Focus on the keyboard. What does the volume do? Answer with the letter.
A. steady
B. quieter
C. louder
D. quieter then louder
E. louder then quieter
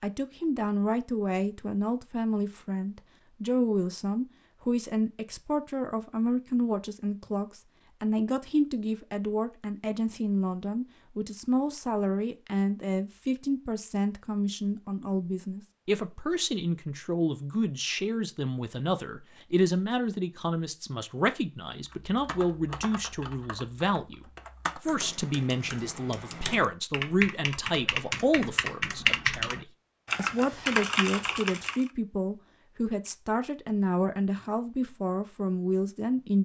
C.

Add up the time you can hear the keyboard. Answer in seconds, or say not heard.
10 s.